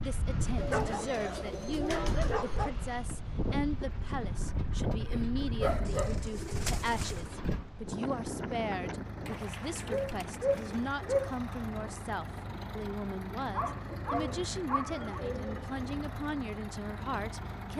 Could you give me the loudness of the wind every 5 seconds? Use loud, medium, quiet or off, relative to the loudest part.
loud, loud, medium, medium.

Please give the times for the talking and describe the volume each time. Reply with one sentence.
You can hear the talking from 0.0 to 17.7 s, at a steady volume.